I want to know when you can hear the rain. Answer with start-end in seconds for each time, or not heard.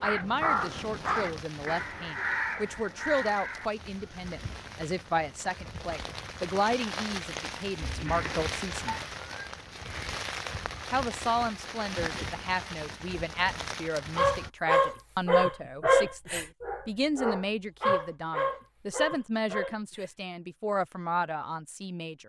0.0-14.5.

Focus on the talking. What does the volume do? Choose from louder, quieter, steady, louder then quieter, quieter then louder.
steady.